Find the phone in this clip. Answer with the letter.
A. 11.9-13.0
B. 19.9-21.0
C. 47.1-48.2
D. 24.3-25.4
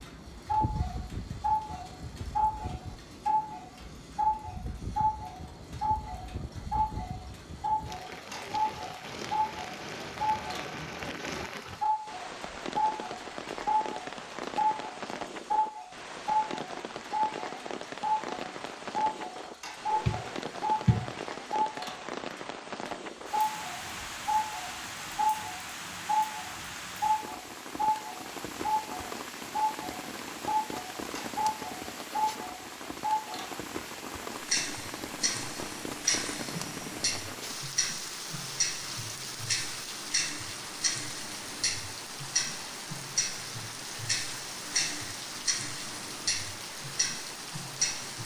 B.